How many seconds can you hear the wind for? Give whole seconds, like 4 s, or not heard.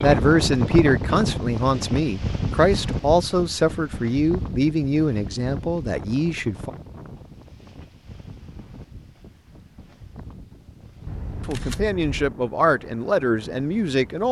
14 s.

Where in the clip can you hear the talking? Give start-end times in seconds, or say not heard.
0.0-6.7, 11.4-14.2.